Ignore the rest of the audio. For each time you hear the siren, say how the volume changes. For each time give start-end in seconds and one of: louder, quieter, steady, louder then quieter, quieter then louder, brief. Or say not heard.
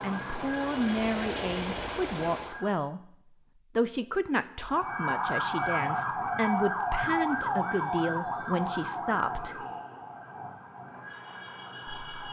0.0-2.9 brief
4.6-12.2 quieter.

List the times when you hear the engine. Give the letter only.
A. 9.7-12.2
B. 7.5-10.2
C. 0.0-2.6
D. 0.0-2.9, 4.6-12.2
C.